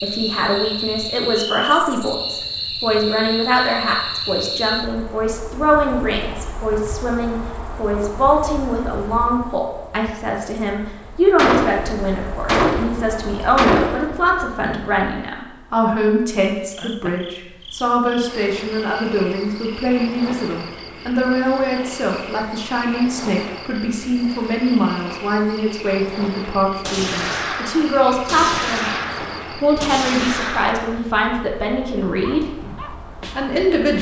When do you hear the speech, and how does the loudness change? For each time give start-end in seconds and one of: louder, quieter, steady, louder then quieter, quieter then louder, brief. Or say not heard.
0.0-33.9 steady.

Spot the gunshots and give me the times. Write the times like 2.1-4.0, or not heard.
11.3-14.2, 26.8-31.0.